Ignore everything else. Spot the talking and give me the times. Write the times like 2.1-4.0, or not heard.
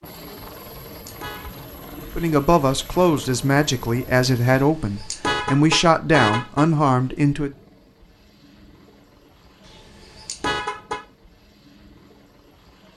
2.1-7.5.